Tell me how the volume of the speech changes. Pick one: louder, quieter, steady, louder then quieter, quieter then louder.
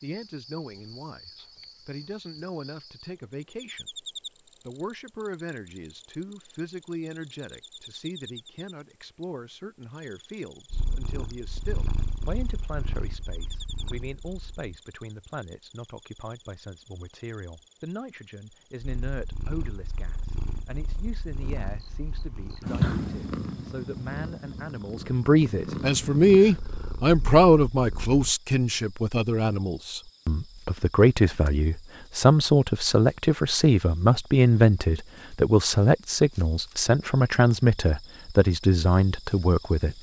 louder.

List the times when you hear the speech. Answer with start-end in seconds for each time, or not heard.
0.0-4.0, 4.7-39.9.